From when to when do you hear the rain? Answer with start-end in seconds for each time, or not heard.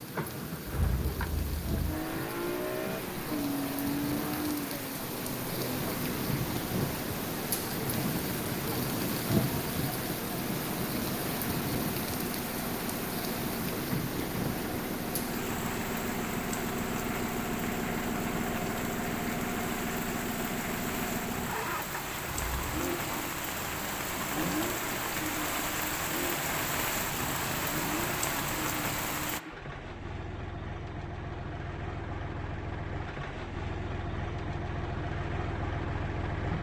0.0-29.4.